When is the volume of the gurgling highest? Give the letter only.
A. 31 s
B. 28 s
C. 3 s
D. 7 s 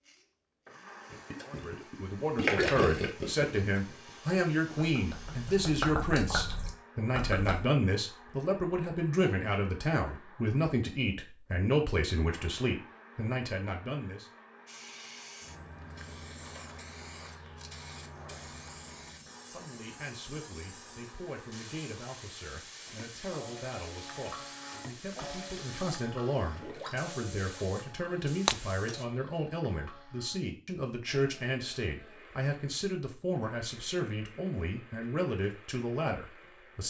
C.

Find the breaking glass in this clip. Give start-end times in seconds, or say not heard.
28.4-28.9.